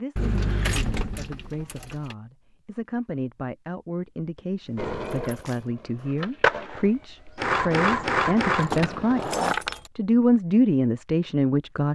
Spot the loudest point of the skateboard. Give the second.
8 s.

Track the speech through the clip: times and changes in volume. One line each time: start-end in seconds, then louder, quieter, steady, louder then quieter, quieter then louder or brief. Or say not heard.
0.0-11.9 louder.